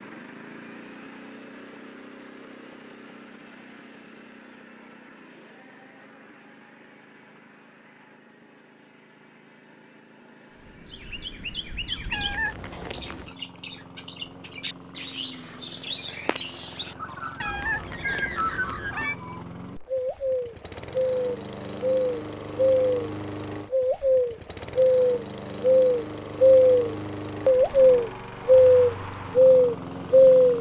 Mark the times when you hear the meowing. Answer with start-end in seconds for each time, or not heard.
12.1-13.3, 17.4-19.1.